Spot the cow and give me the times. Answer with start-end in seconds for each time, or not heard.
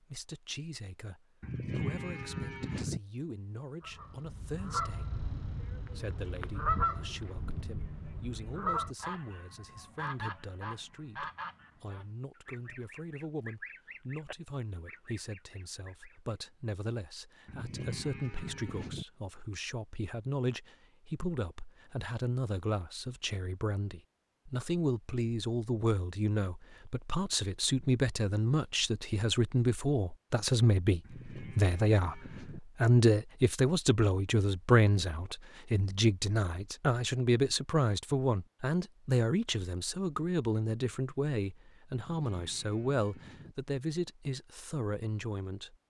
1.4-3.0, 17.4-19.1, 31.0-32.6, 42.0-43.5.